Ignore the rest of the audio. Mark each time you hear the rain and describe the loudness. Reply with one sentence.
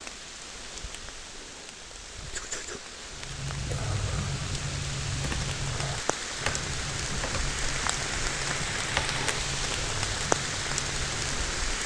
You can hear the rain from 0.0 to 11.8 s, getting louder.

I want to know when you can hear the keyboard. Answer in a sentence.
The keyboard can be heard from 3.1 to 11.7 s.